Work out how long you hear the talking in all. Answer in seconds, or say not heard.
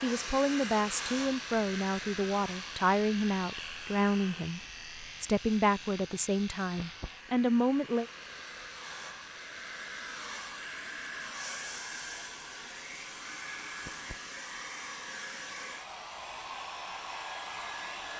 8 s.